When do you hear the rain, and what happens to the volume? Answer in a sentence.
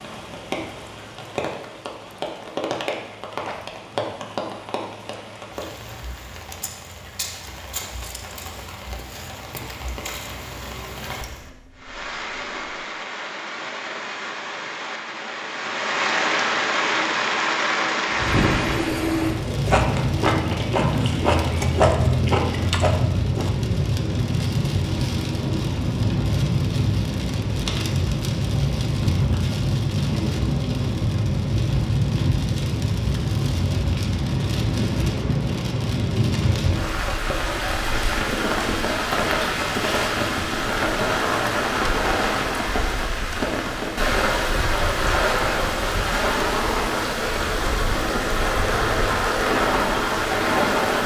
You can hear the rain from 0.0 to 51.0 s, getting louder.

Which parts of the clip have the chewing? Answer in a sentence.
The chewing can be heard from 19.2 to 23.5 s.